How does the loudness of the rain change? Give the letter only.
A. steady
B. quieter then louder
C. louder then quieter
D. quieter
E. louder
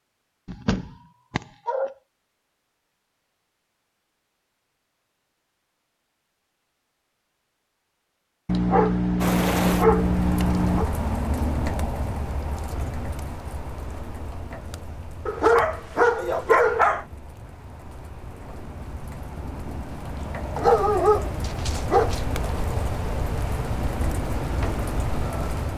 B.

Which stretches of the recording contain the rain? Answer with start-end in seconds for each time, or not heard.
9.2-25.7.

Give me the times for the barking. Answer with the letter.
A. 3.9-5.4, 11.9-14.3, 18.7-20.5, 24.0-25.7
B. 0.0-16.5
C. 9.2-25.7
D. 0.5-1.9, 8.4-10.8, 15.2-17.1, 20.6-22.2
D.